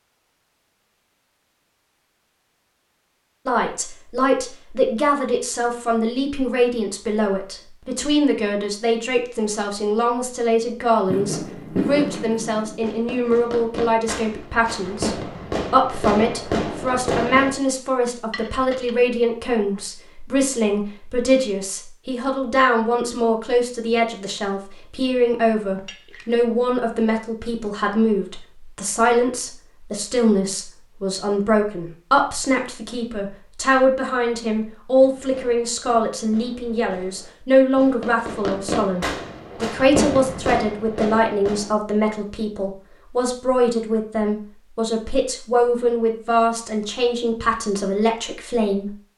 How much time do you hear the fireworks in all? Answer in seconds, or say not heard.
13 s.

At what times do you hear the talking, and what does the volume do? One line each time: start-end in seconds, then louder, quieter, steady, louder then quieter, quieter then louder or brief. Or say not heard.
3.5-49.0 steady.